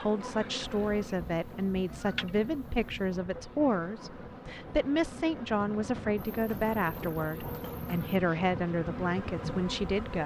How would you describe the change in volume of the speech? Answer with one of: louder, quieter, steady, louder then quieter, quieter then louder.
steady.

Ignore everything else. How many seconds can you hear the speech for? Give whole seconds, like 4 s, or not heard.
10 s.